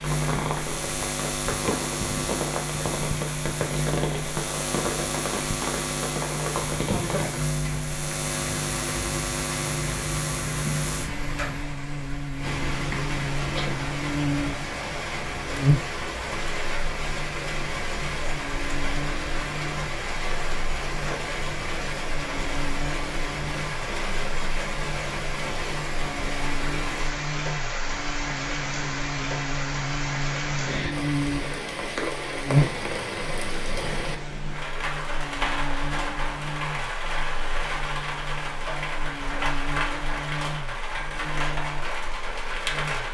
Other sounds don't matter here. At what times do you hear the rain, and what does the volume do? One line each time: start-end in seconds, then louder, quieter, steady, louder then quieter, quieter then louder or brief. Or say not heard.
0.0-43.0 steady.